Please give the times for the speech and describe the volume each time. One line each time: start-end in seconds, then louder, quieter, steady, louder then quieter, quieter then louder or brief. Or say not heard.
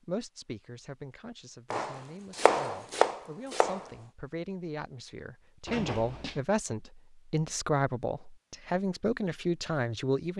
0.1-10.3 louder.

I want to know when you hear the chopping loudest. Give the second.
3 s.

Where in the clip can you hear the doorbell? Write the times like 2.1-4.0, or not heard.
not heard.